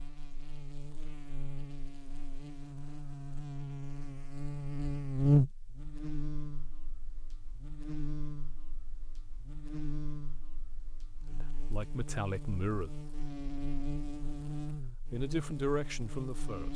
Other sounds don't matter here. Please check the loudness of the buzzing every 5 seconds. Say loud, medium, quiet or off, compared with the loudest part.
medium, loud, medium, medium.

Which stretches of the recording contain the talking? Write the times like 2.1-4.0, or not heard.
11.3-12.9, 15.1-16.7.